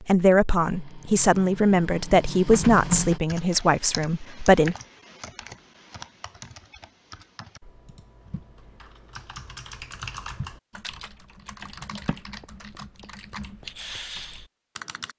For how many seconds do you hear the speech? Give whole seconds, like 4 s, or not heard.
5 s.